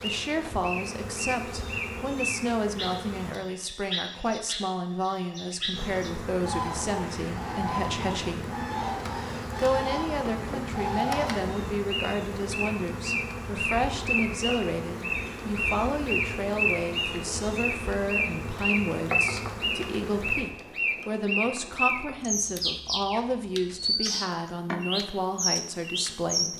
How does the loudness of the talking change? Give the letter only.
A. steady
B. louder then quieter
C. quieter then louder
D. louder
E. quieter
A.